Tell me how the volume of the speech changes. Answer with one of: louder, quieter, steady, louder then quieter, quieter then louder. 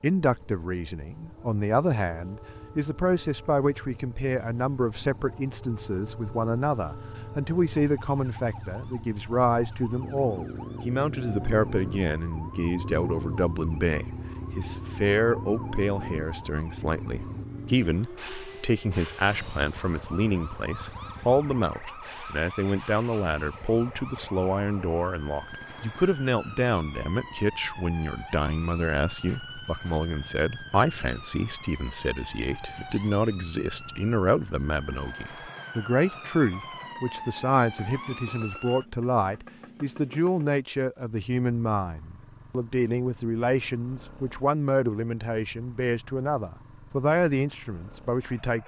steady.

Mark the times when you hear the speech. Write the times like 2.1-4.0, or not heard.
0.0-48.6.